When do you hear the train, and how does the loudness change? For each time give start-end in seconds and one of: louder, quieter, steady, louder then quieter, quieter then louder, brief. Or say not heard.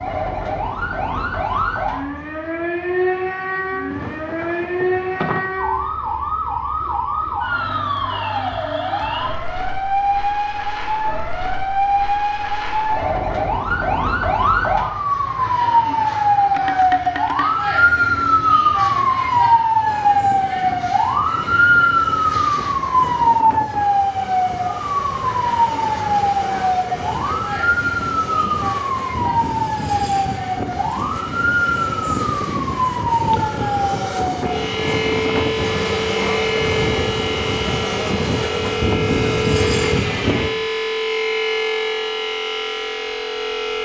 19.8-40.5 louder.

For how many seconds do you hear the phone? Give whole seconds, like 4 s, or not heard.
4 s.